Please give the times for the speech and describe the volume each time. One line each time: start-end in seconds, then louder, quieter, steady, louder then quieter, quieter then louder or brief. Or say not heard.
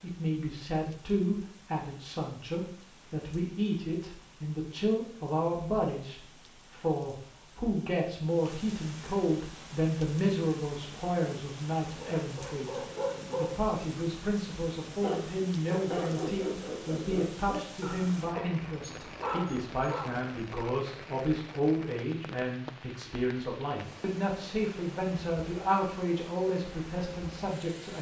0.0-27.9 steady.